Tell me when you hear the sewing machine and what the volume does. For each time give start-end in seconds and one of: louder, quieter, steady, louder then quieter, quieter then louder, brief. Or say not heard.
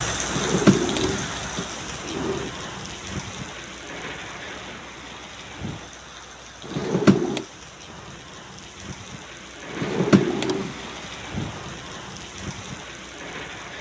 not heard.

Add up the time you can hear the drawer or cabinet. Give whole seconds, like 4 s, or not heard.
4 s.